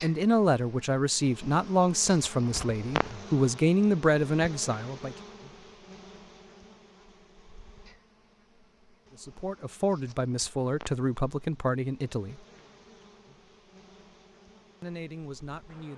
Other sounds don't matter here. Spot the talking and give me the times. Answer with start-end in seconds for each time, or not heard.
0.0-5.2, 9.1-12.4, 14.8-15.9.